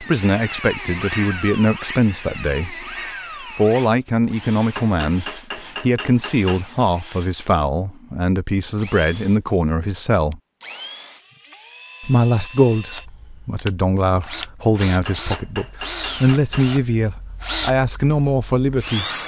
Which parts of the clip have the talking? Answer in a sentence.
The talking can be heard from 0.0 to 10.4 s and from 12.0 to 19.1 s.